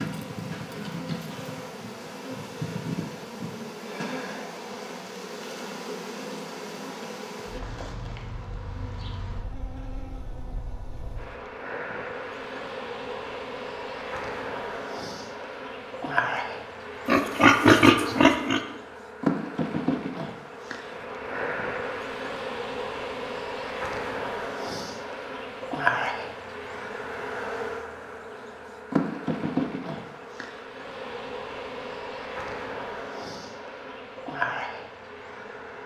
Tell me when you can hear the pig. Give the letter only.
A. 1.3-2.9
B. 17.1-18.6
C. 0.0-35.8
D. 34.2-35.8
B.